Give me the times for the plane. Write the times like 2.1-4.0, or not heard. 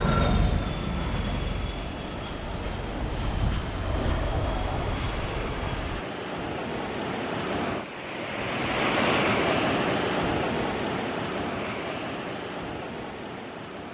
0.0-6.0.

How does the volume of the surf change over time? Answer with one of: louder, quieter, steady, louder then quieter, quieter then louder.
louder then quieter.